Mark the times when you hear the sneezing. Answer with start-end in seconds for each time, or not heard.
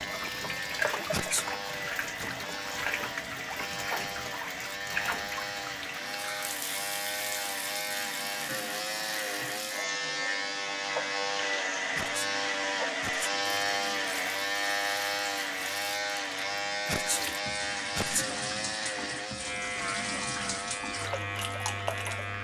1.1-2.3, 11.9-13.3, 16.9-18.3.